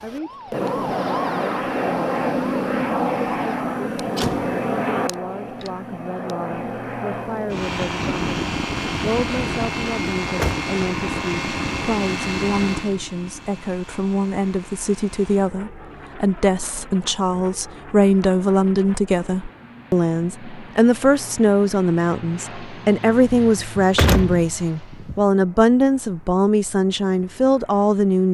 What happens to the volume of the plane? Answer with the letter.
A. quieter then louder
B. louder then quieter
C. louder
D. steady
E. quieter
E.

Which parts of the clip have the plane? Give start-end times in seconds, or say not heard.
0.0-28.2.